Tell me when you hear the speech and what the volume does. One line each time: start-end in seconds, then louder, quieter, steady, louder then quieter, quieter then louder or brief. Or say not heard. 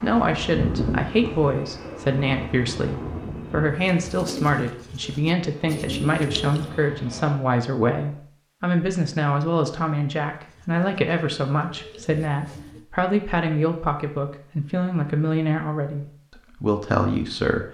0.0-17.7 steady.